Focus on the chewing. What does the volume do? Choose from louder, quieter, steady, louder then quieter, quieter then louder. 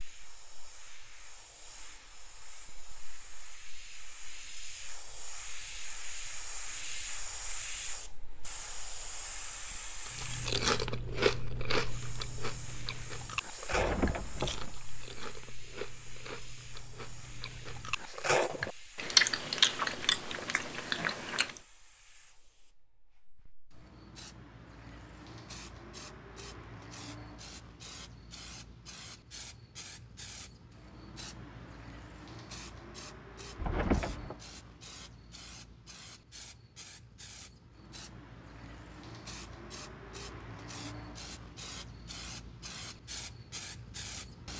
quieter then louder.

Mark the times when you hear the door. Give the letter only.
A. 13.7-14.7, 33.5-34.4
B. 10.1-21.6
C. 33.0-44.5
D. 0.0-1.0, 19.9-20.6
A.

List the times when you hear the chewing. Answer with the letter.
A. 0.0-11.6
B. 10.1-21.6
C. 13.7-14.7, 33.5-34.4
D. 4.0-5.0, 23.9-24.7
B.